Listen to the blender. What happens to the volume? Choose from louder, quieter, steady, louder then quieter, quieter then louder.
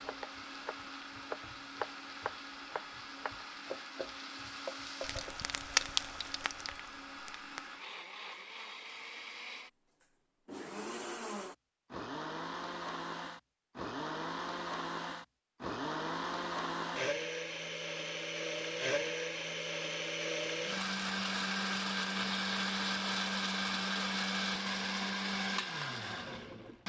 louder.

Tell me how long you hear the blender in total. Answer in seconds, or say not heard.
27 s.